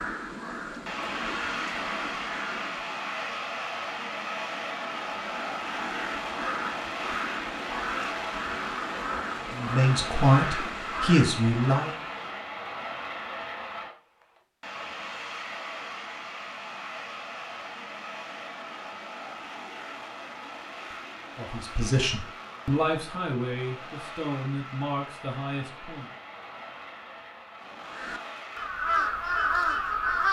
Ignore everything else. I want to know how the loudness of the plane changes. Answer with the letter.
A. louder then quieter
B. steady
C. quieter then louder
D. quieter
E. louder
D.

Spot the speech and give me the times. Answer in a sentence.
You can hear the speech from 9.6 to 11.9 s and from 21.4 to 26.1 s.